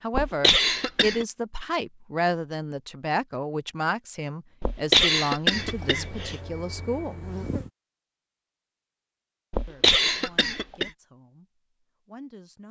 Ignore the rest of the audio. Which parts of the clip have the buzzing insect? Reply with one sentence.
The buzzing insect can be heard from 5.5 to 7.7 s.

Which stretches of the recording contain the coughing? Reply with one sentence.
You can hear the coughing from 0.1 to 1.2 s, from 4.6 to 6.3 s and from 9.5 to 10.9 s.